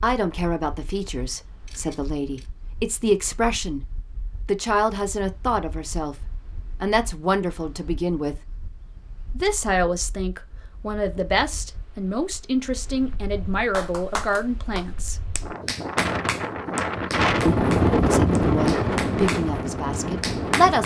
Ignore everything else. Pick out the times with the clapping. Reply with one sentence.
You can hear the clapping from 13.7 to 20.8 s.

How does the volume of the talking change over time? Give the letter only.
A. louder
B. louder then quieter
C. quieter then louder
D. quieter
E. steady
E.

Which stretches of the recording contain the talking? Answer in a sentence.
You can hear the talking from 0.0 to 3.8 s, from 4.5 to 8.3 s, from 9.3 to 15.2 s and from 17.4 to 20.8 s.